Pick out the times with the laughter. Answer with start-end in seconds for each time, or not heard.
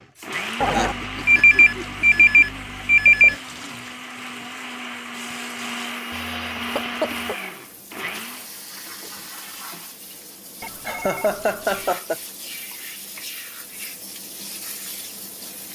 0.7-2.5, 6.5-7.3, 10.8-12.2.